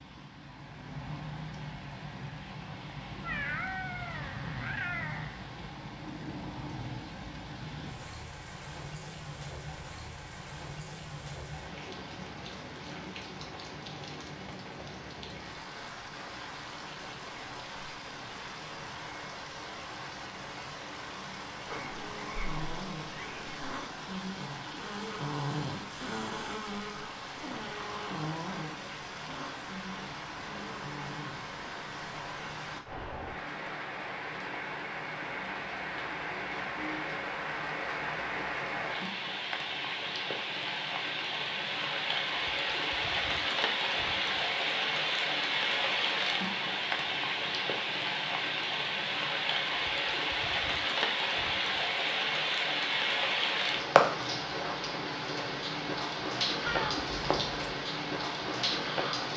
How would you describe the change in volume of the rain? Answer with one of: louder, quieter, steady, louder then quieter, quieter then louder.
louder.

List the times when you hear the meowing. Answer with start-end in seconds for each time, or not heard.
3.2-5.5, 21.6-23.8, 56.6-57.8.